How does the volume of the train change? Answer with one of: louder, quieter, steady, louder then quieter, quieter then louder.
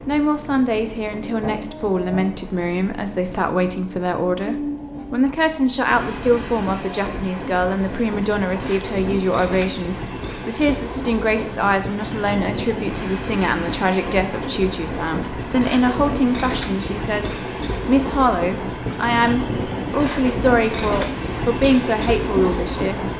louder.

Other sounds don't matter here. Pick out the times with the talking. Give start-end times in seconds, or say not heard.
0.1-23.1.